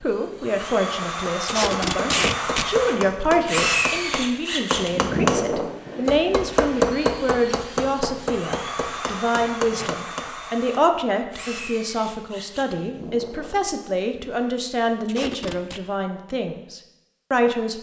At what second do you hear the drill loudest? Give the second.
4 s.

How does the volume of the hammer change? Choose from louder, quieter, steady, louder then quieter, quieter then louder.
louder then quieter.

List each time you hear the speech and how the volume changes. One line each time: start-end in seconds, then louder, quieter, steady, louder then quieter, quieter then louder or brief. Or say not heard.
0.0-17.7 steady.